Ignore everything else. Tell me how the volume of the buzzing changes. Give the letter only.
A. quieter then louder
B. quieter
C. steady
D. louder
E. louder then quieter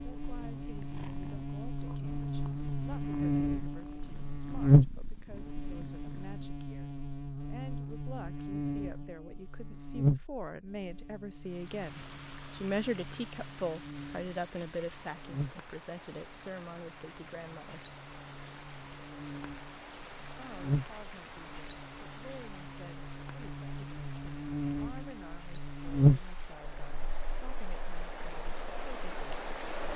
A.